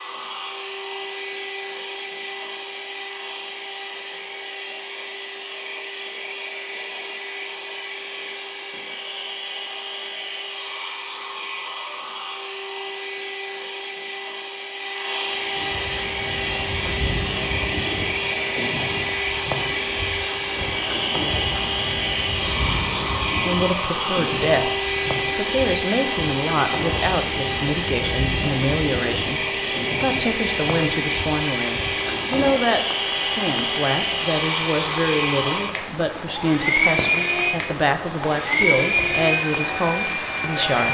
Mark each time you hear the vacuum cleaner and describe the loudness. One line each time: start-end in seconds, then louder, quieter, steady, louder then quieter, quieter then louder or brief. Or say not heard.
0.0-40.8 louder.